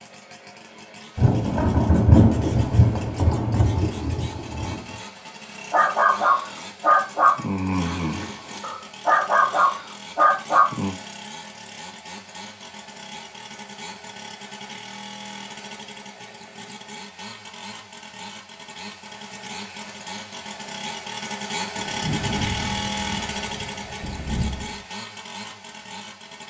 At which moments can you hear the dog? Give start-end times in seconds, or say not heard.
5.7-10.9.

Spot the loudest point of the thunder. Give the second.
2 s.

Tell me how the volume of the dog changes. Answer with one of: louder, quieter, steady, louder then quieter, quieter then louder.
quieter then louder.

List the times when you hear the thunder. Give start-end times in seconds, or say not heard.
1.1-4.8, 21.8-24.9.